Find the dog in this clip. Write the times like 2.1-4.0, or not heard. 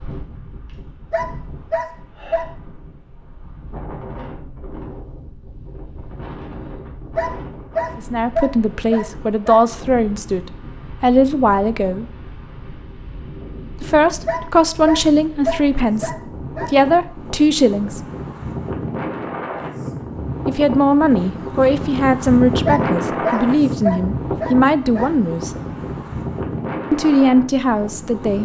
1.1-2.5, 7.2-9.6, 14.2-16.7, 22.6-25.1.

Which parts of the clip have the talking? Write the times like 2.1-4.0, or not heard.
8.0-12.1, 13.8-18.0, 20.4-25.5, 26.9-28.4.